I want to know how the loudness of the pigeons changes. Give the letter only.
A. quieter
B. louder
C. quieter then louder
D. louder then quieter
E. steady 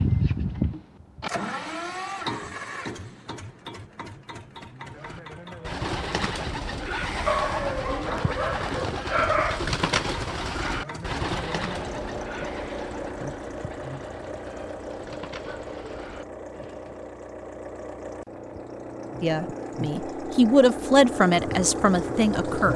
A.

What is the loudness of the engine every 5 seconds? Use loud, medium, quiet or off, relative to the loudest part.
loud, medium, medium, medium, loud.